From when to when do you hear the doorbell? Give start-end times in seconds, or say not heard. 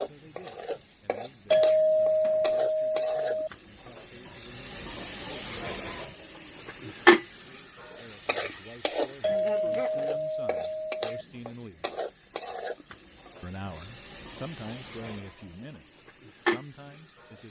1.5-3.5, 9.2-11.1.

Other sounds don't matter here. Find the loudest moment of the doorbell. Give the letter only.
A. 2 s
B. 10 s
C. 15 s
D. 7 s
A.